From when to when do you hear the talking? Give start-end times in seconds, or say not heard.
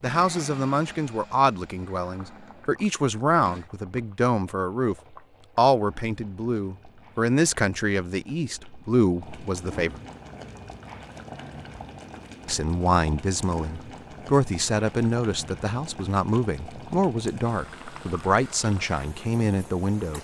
0.0-5.0, 5.5-10.0, 12.4-20.1.